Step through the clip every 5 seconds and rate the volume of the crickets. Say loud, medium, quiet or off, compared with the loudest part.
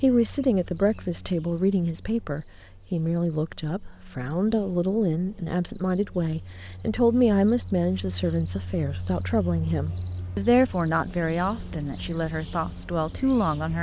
medium, medium, loud.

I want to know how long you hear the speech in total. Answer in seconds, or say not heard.
14 s.